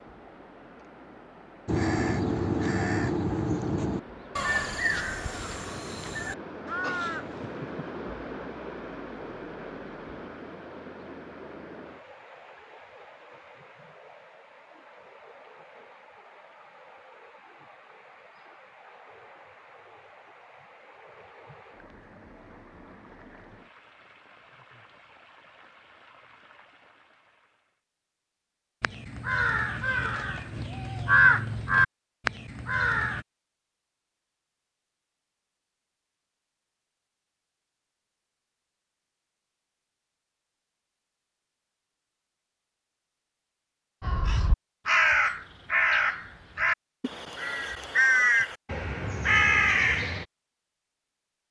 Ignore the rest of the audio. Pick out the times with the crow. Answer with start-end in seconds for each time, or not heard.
1.6-7.9, 28.8-33.2, 44.0-50.2.